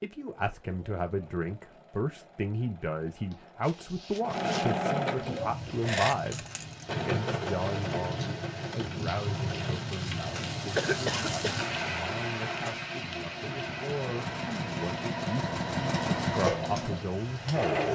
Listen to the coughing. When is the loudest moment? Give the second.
11 s.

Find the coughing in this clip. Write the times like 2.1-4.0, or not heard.
3.3-4.7, 10.8-11.7.